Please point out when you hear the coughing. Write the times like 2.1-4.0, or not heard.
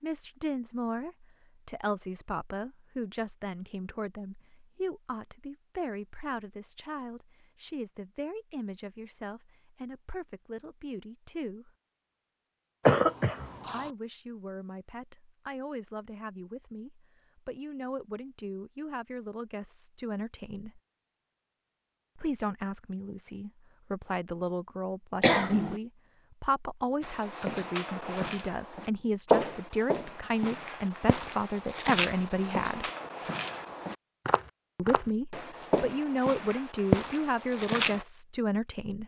12.8-13.9, 25.2-25.8.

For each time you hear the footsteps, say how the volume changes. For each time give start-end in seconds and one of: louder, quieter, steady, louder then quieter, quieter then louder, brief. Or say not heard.
27.0-38.0 quieter then louder.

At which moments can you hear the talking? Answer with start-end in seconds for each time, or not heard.
0.0-11.7, 13.7-20.8, 22.1-32.9, 34.8-39.0.